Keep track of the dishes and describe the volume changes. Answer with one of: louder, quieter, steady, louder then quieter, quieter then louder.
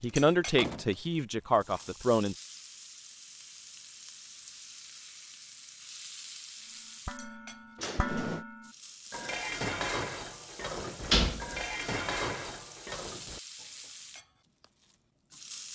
steady.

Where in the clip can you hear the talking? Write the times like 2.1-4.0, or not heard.
0.0-2.4.